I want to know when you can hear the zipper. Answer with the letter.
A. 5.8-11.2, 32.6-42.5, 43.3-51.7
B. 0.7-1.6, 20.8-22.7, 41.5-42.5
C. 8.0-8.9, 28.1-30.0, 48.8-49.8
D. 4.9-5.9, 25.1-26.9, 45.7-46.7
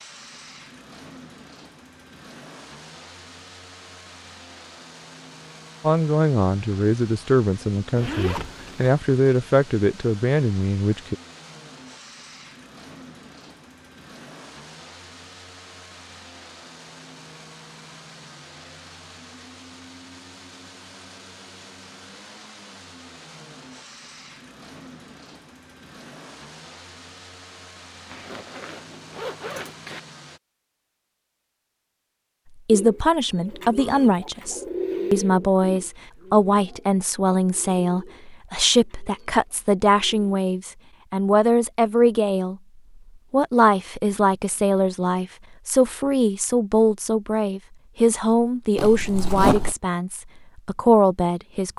C.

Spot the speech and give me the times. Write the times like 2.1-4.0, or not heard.
5.8-11.2, 32.6-42.5, 43.3-51.7.